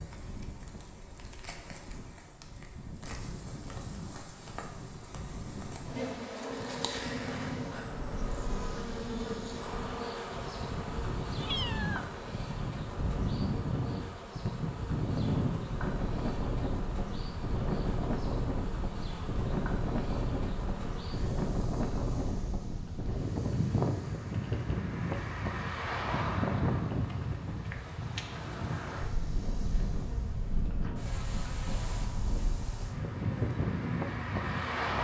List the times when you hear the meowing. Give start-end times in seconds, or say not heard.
11.3-12.1.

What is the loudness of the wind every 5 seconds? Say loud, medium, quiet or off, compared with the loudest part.
quiet, medium, loud, loud, loud, loud, loud.